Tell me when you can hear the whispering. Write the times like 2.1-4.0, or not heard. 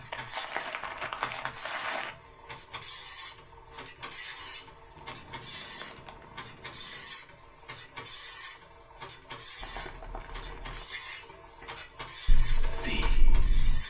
12.2-13.8.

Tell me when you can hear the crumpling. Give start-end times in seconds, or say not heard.
0.1-2.1, 5.0-7.0, 9.6-10.9.